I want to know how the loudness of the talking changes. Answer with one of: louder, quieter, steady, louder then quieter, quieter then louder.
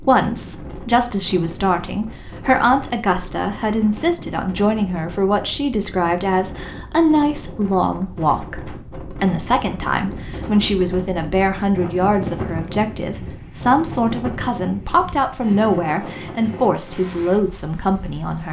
steady.